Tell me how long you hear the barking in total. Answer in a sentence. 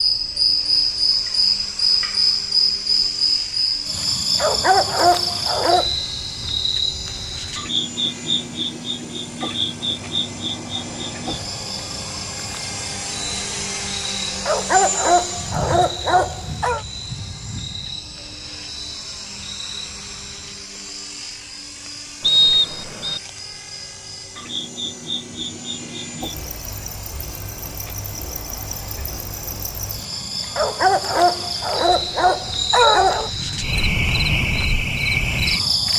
The barking can be heard for 7 seconds in total.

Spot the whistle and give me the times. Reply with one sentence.
You can hear the whistle from 22.2 to 23.2 s.